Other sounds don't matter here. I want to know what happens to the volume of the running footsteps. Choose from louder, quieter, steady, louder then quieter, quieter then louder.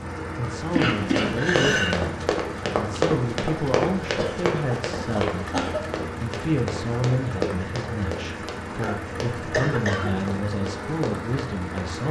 quieter.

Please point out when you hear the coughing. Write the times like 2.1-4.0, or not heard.
0.8-1.9, 4.2-5.9, 8.8-10.2.